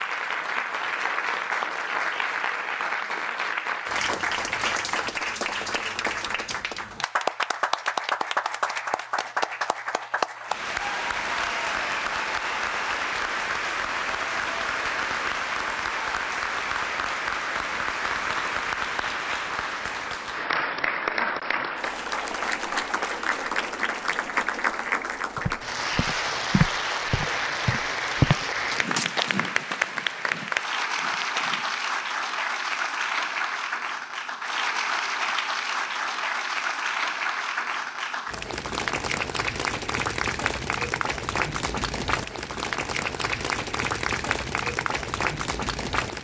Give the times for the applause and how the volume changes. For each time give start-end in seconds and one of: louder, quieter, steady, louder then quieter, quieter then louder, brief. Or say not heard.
0.0-46.1 steady.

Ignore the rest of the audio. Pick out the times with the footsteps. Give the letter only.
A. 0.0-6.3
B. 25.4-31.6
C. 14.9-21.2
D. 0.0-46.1
B.